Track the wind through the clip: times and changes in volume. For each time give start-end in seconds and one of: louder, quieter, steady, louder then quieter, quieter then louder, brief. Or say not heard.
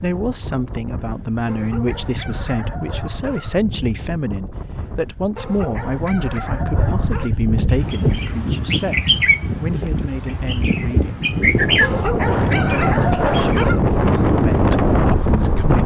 0.0-15.8 louder.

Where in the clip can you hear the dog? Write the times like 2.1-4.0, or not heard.
1.4-3.6, 5.3-7.3, 11.8-13.8.